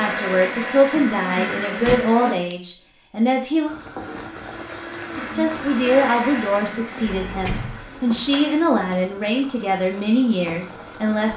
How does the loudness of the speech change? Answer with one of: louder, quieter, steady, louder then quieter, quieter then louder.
steady.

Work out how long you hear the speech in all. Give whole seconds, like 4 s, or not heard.
10 s.